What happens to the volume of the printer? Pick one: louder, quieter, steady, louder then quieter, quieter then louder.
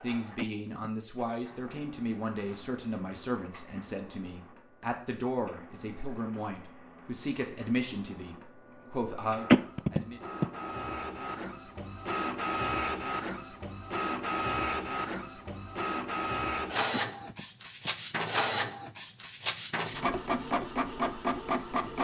louder.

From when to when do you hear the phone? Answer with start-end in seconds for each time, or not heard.
0.3-0.9, 9.5-10.4, 16.9-17.9.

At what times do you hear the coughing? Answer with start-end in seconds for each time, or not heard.
not heard.